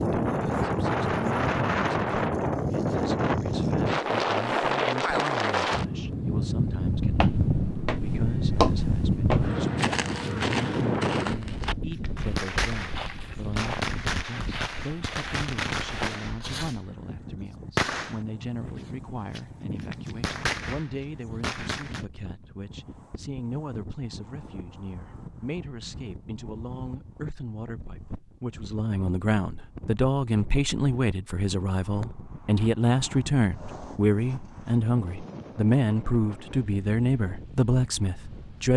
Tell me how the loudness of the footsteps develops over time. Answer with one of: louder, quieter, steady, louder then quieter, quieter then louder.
quieter.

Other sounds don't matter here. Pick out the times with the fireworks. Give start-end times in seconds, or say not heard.
11.7-22.1.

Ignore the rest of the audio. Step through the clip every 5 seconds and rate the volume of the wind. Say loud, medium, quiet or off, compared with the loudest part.
loud, loud, medium, quiet, quiet, quiet, quiet, quiet.